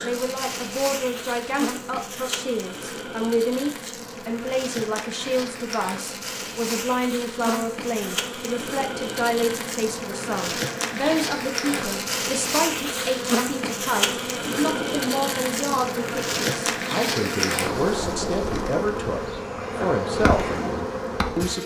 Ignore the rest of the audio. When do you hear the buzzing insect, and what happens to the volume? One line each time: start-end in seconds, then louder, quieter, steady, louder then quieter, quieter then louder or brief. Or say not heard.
0.0-21.6 louder.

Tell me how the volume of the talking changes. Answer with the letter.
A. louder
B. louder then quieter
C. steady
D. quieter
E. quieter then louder
C.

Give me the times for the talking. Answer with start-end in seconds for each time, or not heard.
0.0-21.6.